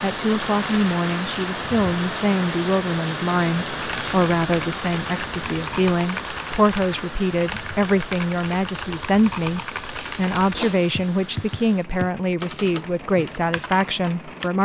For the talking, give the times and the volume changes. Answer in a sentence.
The talking can be heard from 0.0 to 14.6 s, at a steady volume.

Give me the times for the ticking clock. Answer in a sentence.
You can't hear the ticking clock here.